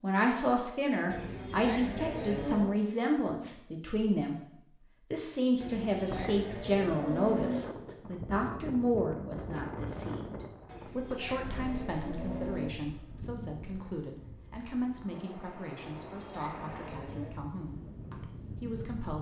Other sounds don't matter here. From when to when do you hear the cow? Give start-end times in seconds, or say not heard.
1.1-2.7, 5.6-7.6, 10.7-12.7, 15.8-17.4.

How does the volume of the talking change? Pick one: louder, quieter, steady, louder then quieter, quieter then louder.
quieter.